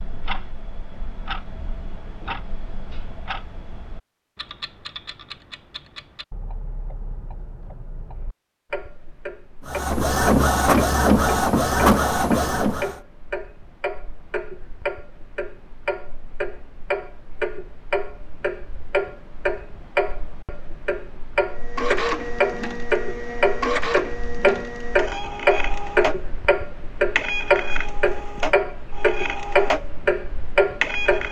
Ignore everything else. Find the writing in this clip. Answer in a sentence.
You can't hear the writing here.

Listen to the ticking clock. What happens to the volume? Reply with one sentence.
The volume of the ticking clock goes up.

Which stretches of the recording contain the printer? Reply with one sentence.
You can hear the printer from 9.7 to 12.9 s and from 21.6 to 31.2 s.